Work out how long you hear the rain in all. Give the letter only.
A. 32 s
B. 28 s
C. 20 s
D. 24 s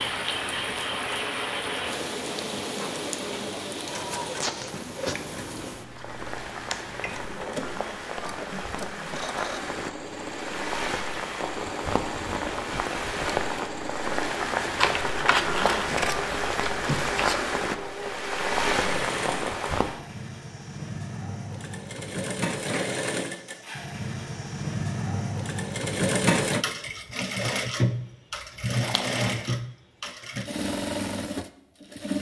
C.